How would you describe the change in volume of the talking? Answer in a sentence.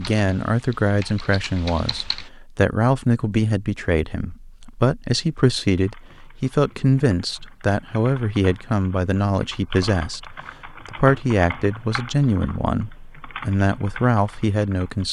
The loudness of the talking stays about the same.